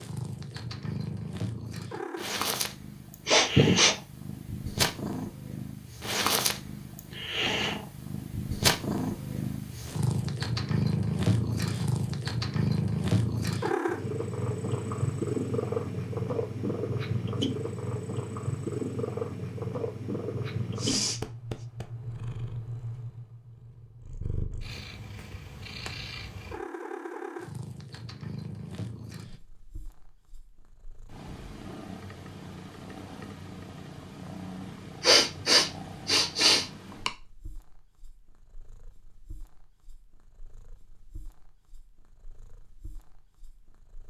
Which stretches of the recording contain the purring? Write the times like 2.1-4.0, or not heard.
0.0-44.0.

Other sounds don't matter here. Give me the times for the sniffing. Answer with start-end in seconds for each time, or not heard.
3.2-4.0, 20.8-21.2, 35.0-37.1.